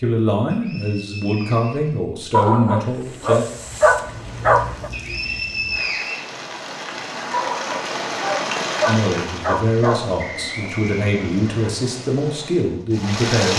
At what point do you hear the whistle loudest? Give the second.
6 s.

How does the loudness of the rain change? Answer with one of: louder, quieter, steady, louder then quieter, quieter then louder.
louder then quieter.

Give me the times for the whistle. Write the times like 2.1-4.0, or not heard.
0.5-2.5, 4.9-6.2, 10.2-11.7.